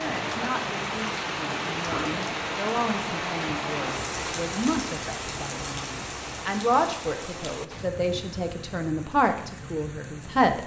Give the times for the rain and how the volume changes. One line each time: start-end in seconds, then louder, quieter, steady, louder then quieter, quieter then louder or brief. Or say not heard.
0.0-10.6 quieter.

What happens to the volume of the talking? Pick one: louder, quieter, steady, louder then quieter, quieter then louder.
louder.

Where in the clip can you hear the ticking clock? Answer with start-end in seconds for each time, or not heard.
not heard.